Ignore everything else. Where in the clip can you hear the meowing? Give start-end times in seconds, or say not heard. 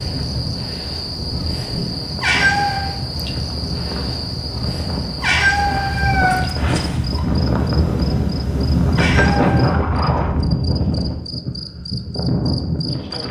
2.2-2.9, 5.2-7.2, 8.9-9.8.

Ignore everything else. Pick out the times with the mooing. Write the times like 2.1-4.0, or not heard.
not heard.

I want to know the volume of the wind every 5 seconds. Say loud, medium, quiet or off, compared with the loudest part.
medium, loud, loud.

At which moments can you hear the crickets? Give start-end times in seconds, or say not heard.
0.0-13.2.